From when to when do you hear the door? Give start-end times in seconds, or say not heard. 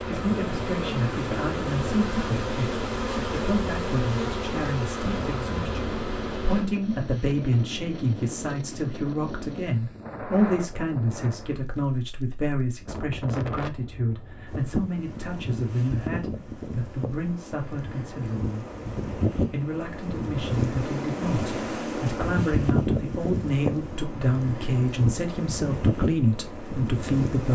not heard.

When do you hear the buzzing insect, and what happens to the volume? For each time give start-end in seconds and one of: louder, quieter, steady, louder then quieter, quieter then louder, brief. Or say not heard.
0.0-6.7 steady.